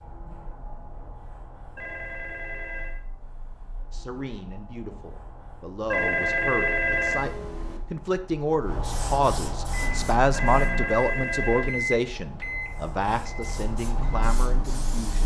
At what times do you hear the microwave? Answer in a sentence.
The microwave can be heard from 9.6 to 15.2 s.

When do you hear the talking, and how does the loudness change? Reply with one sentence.
You can hear the talking from 3.9 to 15.2 s, getting louder then quieter.